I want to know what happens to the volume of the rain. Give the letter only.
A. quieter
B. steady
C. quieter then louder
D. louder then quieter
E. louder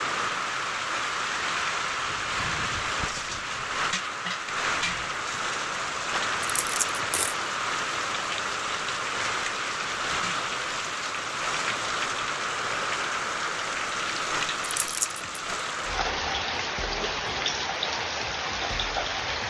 B.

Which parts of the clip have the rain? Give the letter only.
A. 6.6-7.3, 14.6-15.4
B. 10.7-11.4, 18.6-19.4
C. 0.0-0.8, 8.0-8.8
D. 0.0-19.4
D.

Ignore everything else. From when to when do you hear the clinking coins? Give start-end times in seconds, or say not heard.
6.6-7.3, 14.6-15.4.